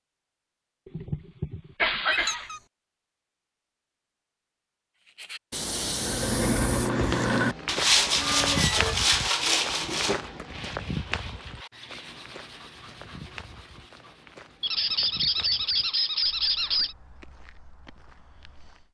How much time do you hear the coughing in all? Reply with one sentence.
You can hear the coughing for 2 seconds altogether.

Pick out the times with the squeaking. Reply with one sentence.
The squeaking can be heard from 2.1 to 2.6 s, from 8.2 to 8.9 s and from 14.6 to 16.9 s.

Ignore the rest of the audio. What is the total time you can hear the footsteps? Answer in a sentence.
You can hear the footsteps for 12 seconds altogether.